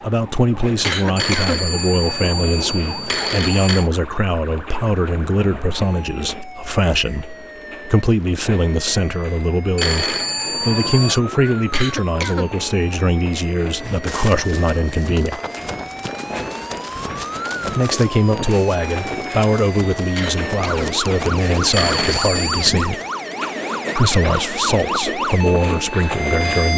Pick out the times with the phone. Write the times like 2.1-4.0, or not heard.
1.1-3.9, 9.8-11.2, 21.7-22.7.